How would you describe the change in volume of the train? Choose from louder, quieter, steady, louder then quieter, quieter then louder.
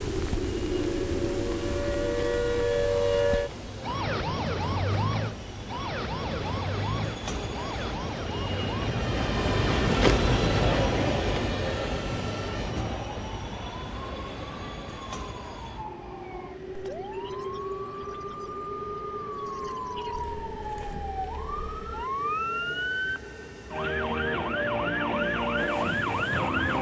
louder then quieter.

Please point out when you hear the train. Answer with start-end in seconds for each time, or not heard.
0.0-26.7.